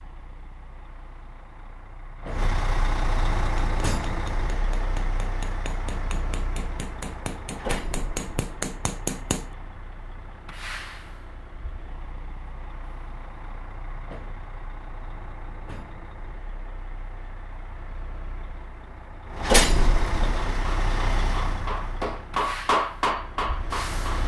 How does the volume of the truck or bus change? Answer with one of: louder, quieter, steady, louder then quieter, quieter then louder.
quieter then louder.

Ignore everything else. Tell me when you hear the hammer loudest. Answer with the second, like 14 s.
23 s.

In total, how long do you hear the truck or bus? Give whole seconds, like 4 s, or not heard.
24 s.